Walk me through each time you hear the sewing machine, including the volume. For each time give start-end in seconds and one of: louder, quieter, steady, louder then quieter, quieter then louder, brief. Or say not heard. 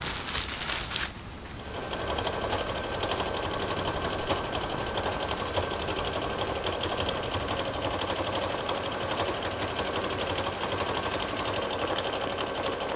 1.5-12.9 steady.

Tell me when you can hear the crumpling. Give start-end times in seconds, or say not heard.
0.0-1.1.